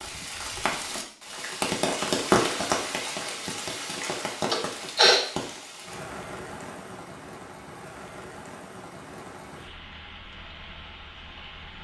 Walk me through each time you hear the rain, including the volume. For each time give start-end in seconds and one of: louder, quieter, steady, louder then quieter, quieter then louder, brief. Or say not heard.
0.0-11.7 quieter.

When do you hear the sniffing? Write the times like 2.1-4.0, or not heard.
4.5-5.2.